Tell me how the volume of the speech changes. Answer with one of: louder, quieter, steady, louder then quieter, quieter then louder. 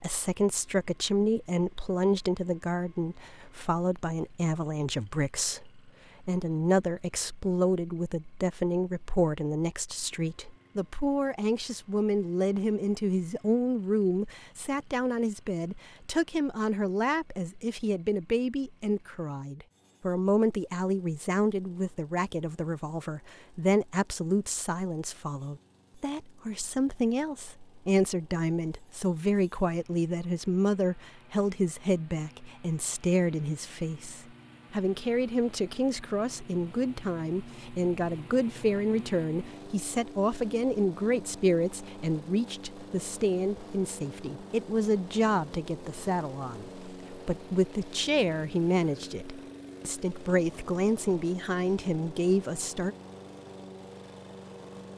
steady.